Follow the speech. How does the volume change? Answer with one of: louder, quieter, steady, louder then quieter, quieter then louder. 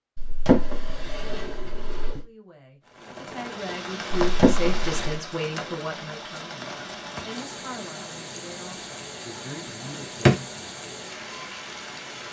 louder then quieter.